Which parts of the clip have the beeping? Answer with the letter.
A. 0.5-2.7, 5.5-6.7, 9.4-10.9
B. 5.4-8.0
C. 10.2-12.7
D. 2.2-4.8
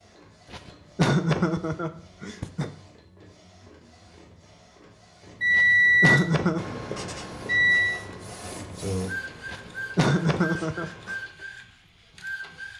B.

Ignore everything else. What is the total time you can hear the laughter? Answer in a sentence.
You can hear the laughter for 5 seconds altogether.